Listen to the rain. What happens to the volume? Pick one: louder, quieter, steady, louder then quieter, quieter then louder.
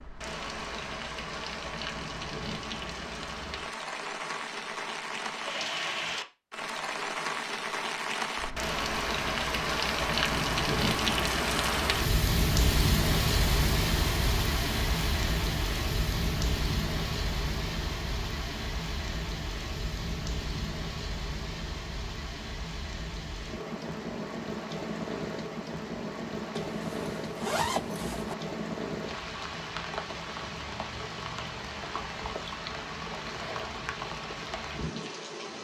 louder then quieter.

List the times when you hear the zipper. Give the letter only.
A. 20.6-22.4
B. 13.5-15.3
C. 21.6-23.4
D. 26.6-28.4
D.